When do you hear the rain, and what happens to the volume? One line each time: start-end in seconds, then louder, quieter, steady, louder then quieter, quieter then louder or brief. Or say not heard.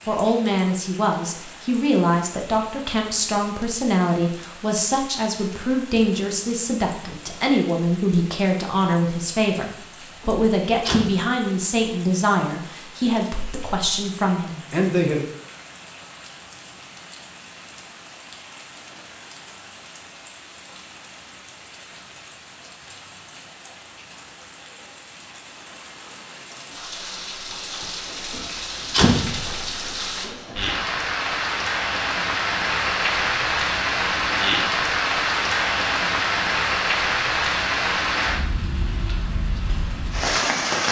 0.0-40.8 louder.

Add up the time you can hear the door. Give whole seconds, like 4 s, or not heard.
2 s.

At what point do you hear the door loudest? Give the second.
29 s.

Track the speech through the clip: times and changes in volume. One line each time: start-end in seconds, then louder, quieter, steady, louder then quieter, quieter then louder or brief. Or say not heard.
0.1-15.2 steady.